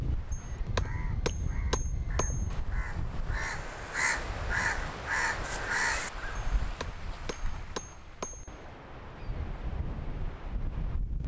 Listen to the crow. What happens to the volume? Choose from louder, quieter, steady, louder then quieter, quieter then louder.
louder.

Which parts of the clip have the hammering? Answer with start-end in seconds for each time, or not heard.
0.3-2.6, 6.6-8.6.